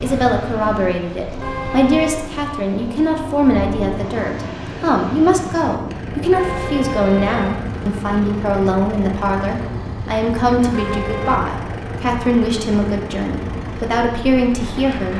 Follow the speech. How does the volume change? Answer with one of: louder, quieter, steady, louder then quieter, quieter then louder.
steady.